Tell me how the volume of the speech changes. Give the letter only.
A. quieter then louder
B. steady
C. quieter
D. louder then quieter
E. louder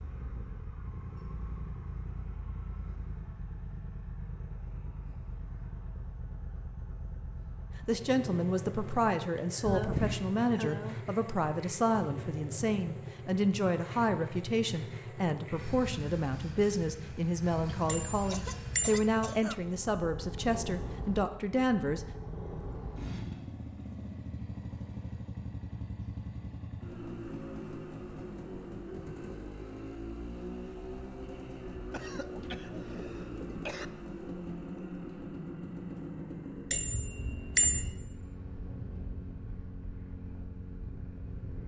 B.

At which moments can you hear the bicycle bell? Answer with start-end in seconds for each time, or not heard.
9.6-10.3, 17.9-18.9, 36.7-37.9.